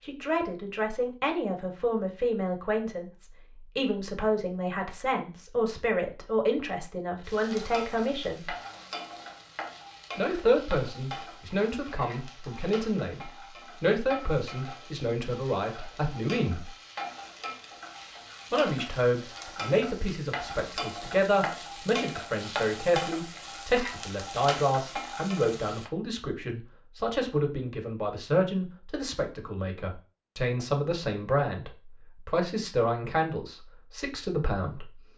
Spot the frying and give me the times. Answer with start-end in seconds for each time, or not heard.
7.2-25.9.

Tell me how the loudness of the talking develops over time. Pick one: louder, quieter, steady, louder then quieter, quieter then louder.
steady.